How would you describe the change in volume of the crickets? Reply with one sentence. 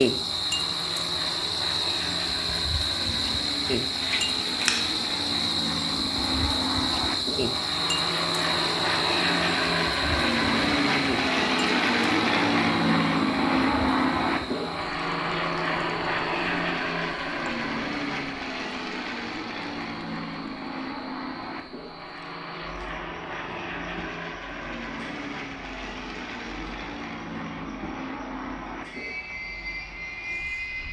The loudness of the crickets goes down.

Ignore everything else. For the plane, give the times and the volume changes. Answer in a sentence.
The plane can be heard from 0.0 to 30.8 s, getting louder then quieter.